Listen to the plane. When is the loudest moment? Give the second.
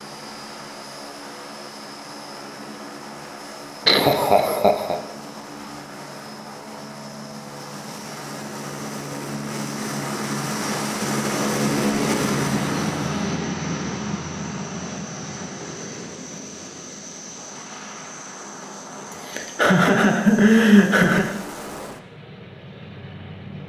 12 s.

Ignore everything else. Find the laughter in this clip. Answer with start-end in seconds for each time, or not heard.
3.9-5.0, 19.1-21.4.